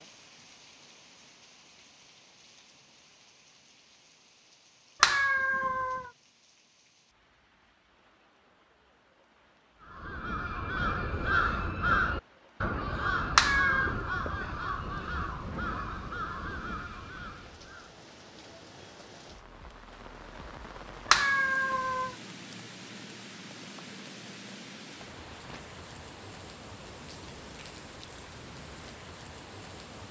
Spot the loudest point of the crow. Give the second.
12 s.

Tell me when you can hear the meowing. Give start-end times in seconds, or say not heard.
5.0-6.1, 13.3-13.9, 21.1-22.1.